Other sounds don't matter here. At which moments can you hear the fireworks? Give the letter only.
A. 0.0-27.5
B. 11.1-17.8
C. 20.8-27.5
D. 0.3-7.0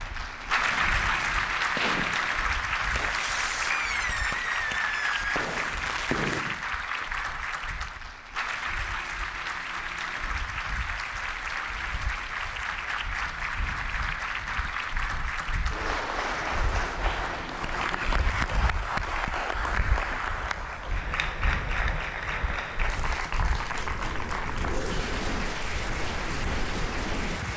D.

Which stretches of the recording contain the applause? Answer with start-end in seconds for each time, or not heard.
0.0-27.5.